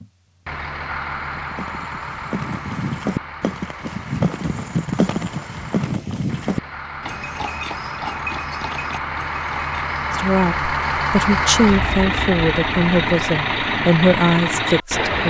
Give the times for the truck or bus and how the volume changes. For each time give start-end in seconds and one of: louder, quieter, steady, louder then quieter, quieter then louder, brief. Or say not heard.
0.0-15.2 quieter then louder.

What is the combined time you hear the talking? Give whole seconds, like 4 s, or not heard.
5 s.